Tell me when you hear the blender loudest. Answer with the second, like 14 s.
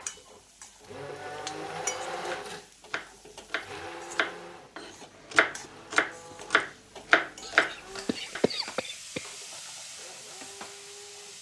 2 s.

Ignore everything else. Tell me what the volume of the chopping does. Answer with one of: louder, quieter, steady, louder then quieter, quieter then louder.
louder.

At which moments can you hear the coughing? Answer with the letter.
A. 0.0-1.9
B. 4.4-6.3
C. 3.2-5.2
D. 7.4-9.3
D.